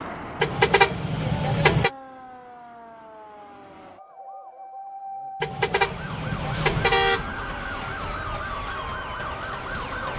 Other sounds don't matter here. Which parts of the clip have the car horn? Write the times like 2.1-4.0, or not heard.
0.4-1.9, 5.4-7.2.